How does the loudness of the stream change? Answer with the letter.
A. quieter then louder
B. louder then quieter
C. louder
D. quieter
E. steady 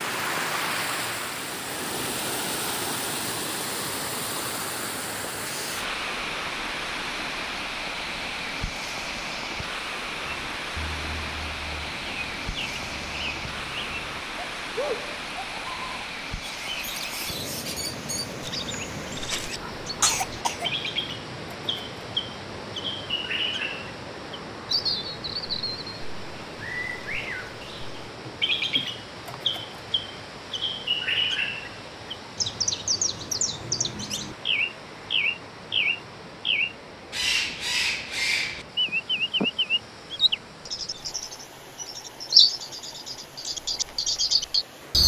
D.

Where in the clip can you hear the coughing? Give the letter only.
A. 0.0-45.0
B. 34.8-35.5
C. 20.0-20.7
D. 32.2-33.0
C.